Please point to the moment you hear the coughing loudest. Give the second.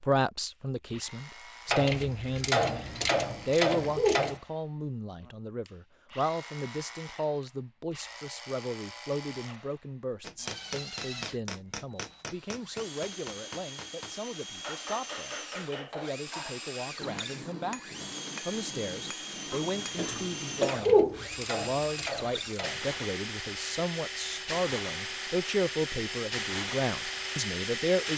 21 s.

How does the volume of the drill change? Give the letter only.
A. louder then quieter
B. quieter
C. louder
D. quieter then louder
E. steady
C.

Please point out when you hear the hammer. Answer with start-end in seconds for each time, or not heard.
10.2-20.8.